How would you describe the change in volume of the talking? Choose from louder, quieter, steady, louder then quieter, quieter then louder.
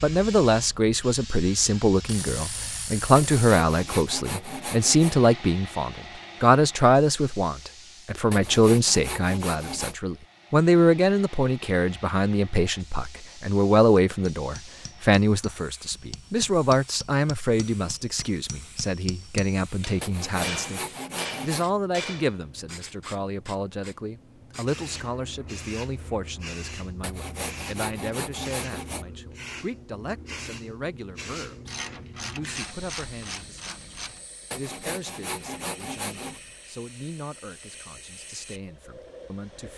quieter.